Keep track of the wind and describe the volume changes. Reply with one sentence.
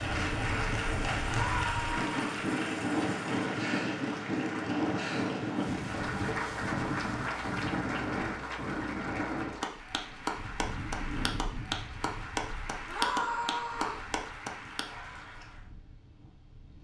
The loudness of the wind goes down.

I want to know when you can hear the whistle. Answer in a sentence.
You can't hear the whistle here.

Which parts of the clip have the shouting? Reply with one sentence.
The shouting can be heard from 1.2 to 2.2 s and from 12.8 to 14.1 s.